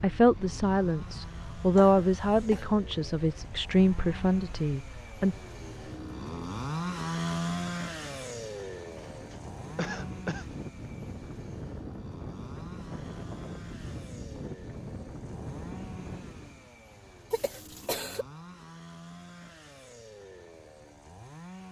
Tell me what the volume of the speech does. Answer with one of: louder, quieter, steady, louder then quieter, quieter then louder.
louder then quieter.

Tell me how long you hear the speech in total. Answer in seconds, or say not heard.
5 s.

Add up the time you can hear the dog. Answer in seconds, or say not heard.
not heard.